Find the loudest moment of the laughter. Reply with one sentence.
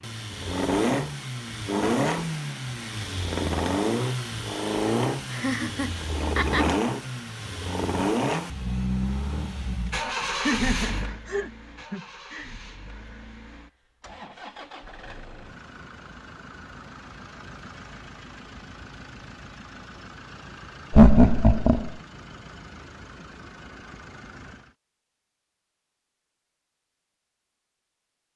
The volume of the laughter peaks at 21 seconds.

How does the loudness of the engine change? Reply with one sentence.
The volume of the engine goes down.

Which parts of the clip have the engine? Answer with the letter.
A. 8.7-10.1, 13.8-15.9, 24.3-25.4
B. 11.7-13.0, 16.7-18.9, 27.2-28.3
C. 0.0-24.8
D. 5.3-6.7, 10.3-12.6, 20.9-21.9
C.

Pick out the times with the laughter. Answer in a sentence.
The laughter can be heard from 5.3 to 6.7 s, from 10.3 to 12.6 s and from 20.9 to 21.9 s.